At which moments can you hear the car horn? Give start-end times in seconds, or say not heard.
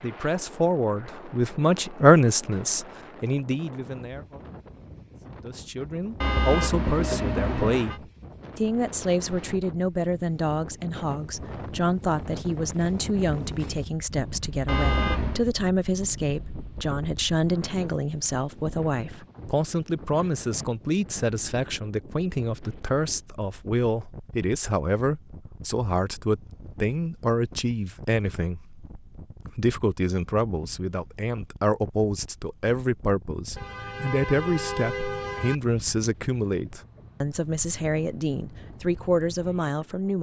6.2-8.0, 14.7-15.4, 33.5-35.5.